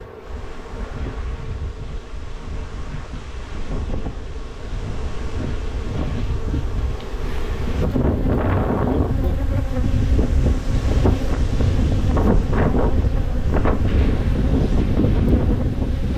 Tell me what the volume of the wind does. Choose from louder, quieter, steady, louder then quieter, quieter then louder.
louder.